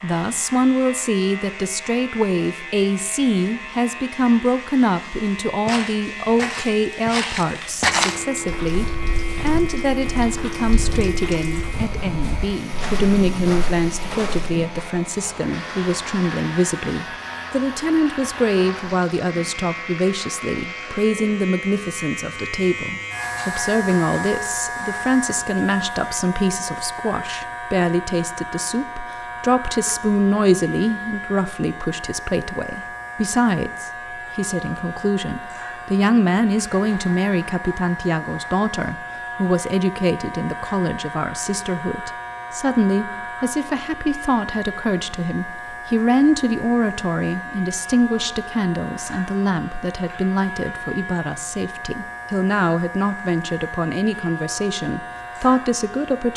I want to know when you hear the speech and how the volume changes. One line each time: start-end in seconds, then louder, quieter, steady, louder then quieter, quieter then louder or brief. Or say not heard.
0.0-56.3 steady.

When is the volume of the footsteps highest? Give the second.
8 s.